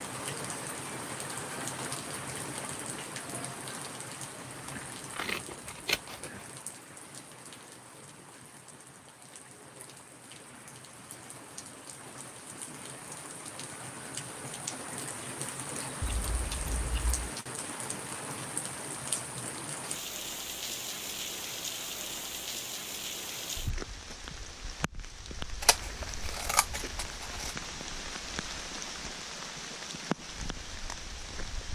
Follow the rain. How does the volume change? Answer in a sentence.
The loudness of the rain goes down, then up.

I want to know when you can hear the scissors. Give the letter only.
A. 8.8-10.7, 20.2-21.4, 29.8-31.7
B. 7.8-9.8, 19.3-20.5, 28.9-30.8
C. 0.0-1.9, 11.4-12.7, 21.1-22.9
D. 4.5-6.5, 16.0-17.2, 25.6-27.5
D.